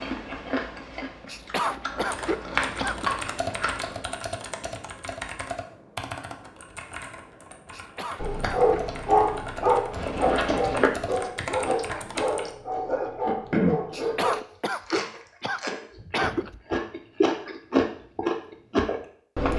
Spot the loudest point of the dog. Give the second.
9 s.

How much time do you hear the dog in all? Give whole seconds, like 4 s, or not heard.
6 s.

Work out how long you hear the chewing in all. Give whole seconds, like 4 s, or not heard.
14 s.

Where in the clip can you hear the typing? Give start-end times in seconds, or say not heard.
2.0-12.6.